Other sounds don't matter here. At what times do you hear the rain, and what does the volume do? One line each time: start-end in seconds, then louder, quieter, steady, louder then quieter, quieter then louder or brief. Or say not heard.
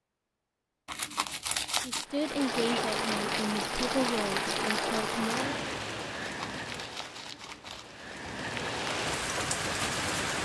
2.0-10.4 quieter then louder.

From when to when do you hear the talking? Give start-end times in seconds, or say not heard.
1.8-5.5.